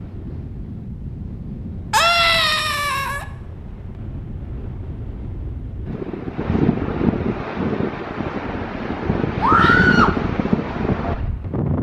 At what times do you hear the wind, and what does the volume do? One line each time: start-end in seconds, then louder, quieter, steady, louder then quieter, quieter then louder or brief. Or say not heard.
0.0-11.7 louder.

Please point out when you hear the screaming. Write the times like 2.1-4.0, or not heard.
1.9-3.2, 9.4-10.2.